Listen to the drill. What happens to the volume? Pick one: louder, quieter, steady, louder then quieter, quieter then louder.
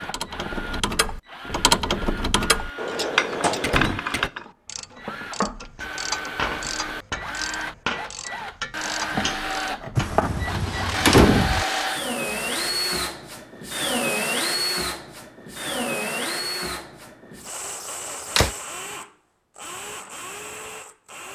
louder then quieter.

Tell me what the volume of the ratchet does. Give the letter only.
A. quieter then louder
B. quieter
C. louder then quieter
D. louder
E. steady
B.